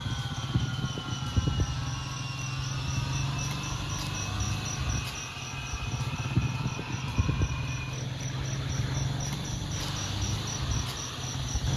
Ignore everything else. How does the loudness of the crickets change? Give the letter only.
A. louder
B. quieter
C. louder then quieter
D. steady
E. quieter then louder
D.